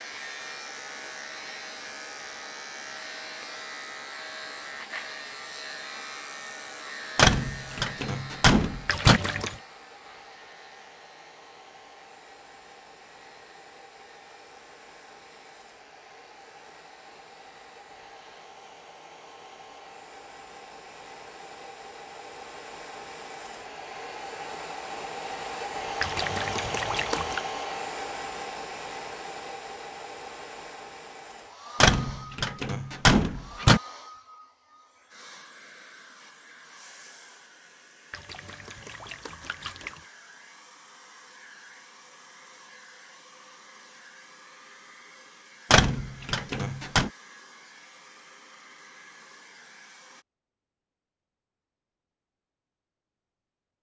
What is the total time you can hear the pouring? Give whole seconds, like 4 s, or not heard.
4 s.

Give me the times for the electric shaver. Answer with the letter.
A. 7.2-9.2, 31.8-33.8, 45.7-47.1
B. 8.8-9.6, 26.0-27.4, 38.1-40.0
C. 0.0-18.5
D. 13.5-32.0
C.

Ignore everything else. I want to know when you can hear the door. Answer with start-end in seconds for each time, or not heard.
7.2-9.2, 31.8-33.8, 45.7-47.1.